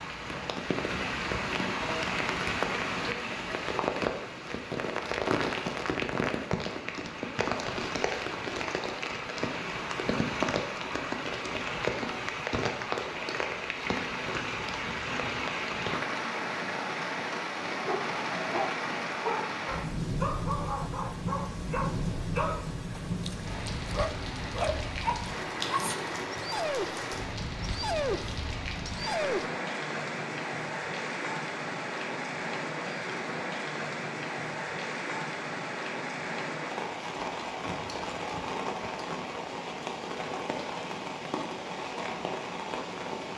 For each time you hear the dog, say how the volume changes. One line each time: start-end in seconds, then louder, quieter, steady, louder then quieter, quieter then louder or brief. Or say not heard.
17.9-29.4 steady.